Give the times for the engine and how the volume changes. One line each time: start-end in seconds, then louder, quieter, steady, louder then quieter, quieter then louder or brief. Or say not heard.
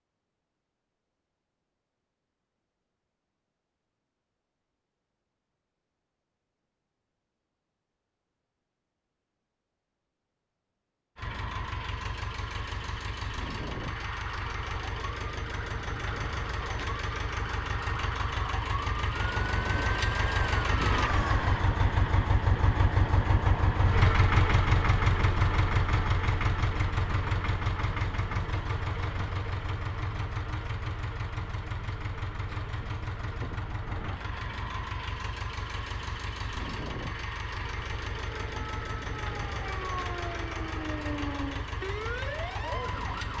11.2-43.3 louder then quieter.